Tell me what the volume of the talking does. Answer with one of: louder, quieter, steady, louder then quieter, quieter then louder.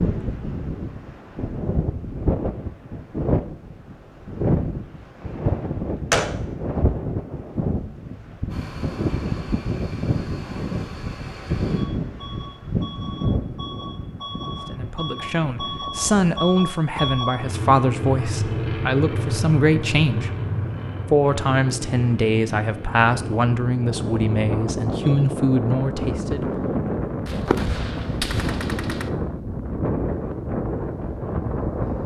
steady.